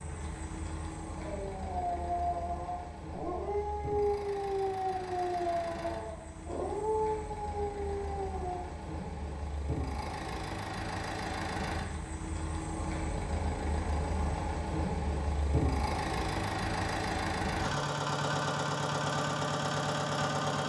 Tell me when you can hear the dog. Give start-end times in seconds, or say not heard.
1.1-8.6.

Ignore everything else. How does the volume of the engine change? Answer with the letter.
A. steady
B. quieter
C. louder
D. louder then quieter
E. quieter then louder
C.